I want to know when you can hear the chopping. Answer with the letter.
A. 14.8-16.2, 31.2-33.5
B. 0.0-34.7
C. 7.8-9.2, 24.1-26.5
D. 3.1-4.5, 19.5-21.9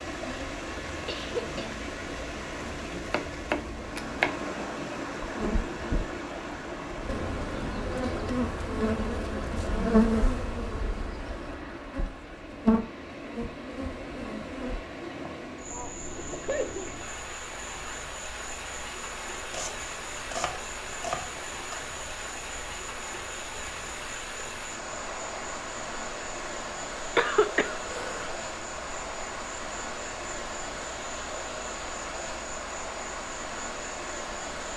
D.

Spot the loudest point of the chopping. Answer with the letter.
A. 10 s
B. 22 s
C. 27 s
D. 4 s
D.